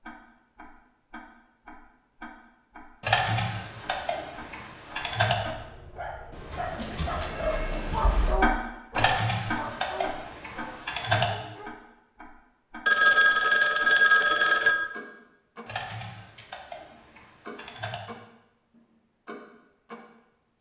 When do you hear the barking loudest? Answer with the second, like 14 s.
8 s.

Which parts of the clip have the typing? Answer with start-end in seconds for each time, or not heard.
3.0-5.3, 8.9-11.3, 15.7-18.0.